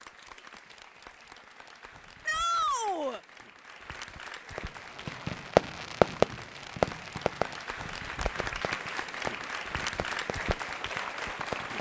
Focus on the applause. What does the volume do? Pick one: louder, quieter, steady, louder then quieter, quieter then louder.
louder.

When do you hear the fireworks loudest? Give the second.
6 s.